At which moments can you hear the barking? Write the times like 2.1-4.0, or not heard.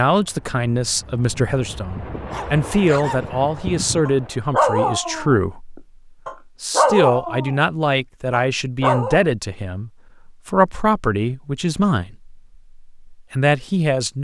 1.1-7.6, 8.3-9.2.